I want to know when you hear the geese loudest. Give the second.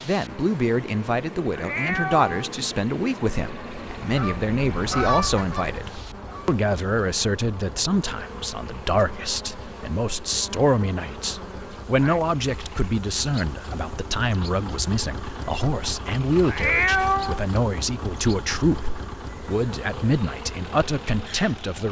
5 s.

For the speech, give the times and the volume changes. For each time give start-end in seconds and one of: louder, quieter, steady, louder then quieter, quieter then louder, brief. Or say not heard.
0.0-21.8 steady.